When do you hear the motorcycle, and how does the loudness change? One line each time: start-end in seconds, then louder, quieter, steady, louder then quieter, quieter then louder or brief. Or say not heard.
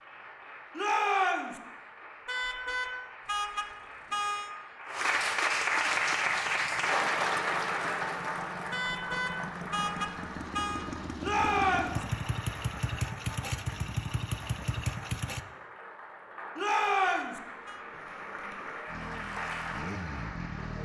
5.8-15.4 louder
18.9-20.7 brief.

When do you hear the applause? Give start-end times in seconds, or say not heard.
0.0-20.7.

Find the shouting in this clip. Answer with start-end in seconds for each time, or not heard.
0.8-1.6, 11.2-12.1, 16.6-17.4.